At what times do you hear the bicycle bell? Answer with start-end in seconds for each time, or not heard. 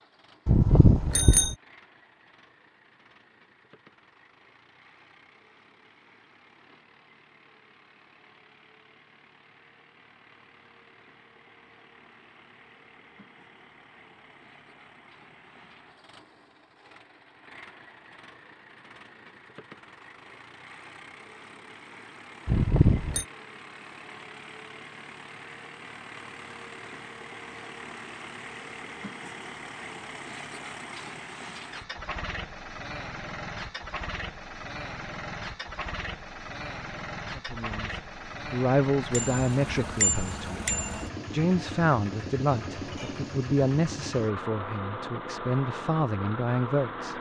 0.5-1.6, 22.4-23.2, 39.1-41.1.